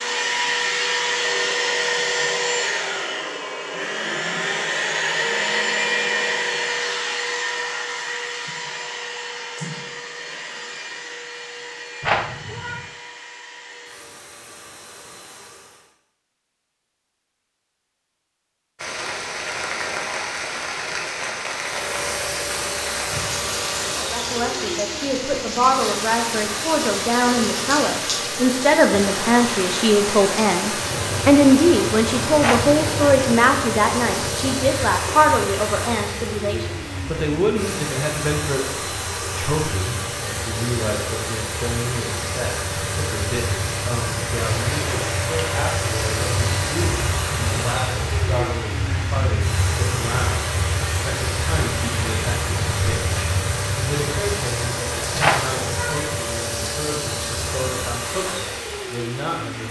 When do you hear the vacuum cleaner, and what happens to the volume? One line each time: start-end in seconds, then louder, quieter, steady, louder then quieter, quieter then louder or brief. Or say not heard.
0.0-15.9 quieter
21.6-59.6 steady.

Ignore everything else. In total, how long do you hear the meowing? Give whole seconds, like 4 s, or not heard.
3 s.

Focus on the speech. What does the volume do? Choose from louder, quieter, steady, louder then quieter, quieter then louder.
quieter.